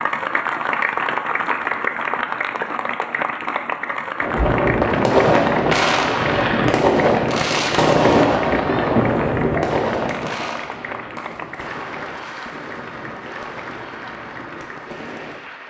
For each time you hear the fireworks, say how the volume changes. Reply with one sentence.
The fireworks can be heard from 4.2 to 15.4 s, getting quieter.